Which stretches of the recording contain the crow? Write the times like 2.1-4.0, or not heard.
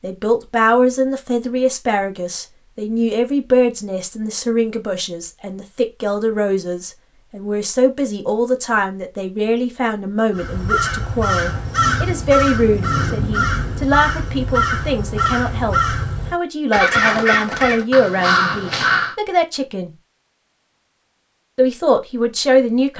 10.3-19.1.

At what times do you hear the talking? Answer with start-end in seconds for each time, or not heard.
0.0-19.9, 21.6-22.9.